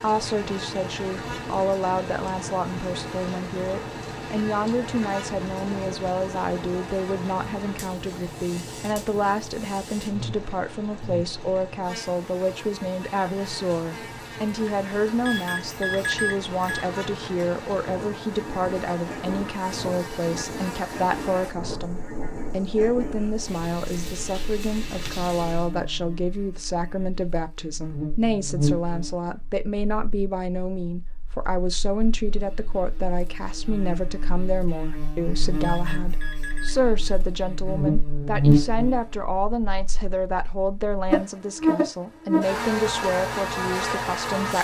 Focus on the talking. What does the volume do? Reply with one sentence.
The volume of the talking stays about the same.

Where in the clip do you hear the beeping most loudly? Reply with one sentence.
The volume of the beeping peaks at 16 seconds.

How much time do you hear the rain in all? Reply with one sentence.
The rain can be heard for 26 seconds in total.